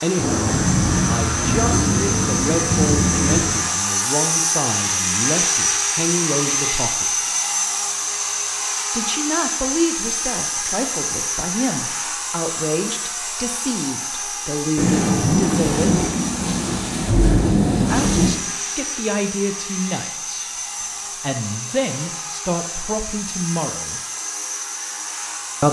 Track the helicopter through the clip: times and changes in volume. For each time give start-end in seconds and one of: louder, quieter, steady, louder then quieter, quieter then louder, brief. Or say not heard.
0.0-25.6 quieter.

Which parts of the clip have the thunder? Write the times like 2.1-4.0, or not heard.
0.1-3.6, 14.8-18.4.